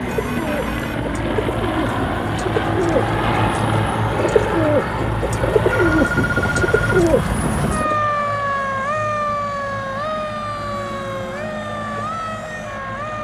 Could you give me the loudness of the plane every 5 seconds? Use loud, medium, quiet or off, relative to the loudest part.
loud, medium, medium.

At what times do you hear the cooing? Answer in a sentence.
The cooing can be heard from 0.1 to 8.0 s.